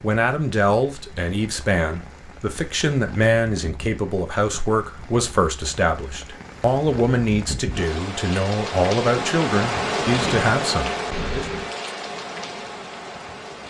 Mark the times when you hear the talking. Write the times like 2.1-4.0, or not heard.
0.0-11.4.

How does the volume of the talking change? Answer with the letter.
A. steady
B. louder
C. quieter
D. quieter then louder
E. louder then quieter
A.